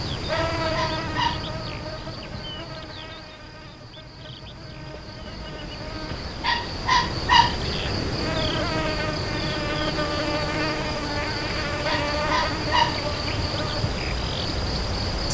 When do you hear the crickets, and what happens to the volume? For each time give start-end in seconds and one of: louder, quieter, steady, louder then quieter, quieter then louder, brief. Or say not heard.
0.0-15.2 quieter then louder.